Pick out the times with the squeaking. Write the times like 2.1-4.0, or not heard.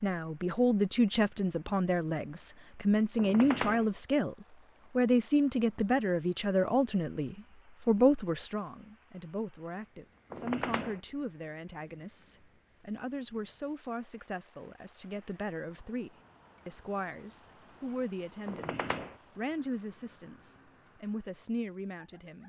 3.1-3.9, 10.3-11.0, 18.4-19.1.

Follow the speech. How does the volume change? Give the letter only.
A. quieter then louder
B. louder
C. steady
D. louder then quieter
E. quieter
E.